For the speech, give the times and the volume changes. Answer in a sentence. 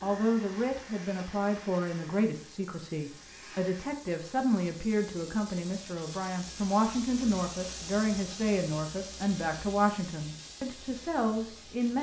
You can hear the speech from 0.0 to 11.9 s, at a steady volume.